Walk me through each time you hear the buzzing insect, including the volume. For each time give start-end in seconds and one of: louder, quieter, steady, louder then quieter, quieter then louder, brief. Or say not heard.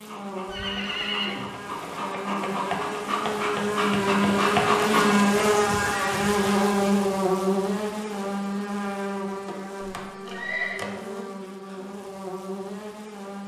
0.0-13.4 louder then quieter.